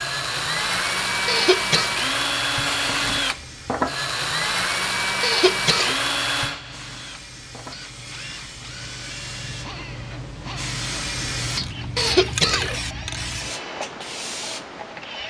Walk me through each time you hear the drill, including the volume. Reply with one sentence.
The drill can be heard from 0.0 to 15.2 s, getting quieter.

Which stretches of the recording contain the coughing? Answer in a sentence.
You can hear the coughing from 1.2 to 1.9 s, from 5.2 to 6.0 s and from 11.9 to 12.8 s.